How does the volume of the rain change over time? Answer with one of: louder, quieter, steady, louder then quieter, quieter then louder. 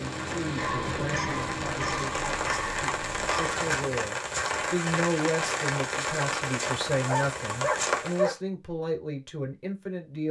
louder.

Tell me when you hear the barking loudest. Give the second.
8 s.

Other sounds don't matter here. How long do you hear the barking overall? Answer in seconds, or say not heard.
4 s.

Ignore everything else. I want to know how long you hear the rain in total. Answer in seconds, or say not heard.
8 s.